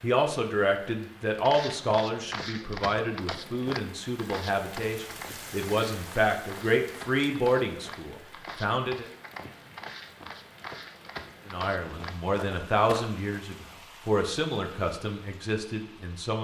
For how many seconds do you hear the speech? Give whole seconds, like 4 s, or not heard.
14 s.